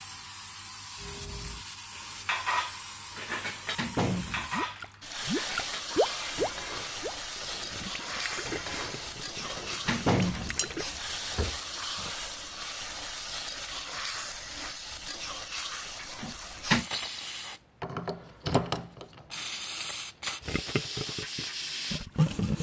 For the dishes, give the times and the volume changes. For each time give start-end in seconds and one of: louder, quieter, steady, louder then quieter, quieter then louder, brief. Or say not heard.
1.0-12.2 quieter.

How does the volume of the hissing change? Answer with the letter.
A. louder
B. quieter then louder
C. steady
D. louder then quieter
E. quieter
A.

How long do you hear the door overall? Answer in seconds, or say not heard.
3 s.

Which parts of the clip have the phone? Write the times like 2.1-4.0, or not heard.
not heard.